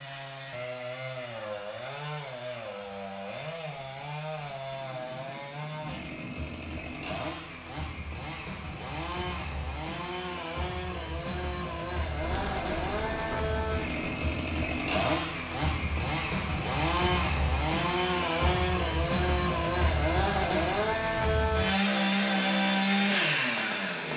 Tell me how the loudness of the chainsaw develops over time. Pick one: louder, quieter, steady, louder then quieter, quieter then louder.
louder.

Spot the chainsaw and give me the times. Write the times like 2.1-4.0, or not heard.
0.0-24.1.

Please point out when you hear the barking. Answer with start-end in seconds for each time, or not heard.
not heard.